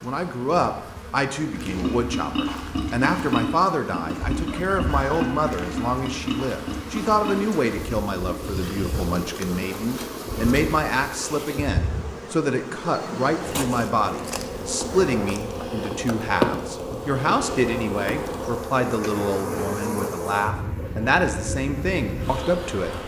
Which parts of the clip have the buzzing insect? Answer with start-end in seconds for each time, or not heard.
0.0-23.0.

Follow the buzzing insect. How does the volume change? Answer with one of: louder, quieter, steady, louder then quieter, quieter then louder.
louder.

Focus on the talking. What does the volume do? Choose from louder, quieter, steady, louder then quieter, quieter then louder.
steady.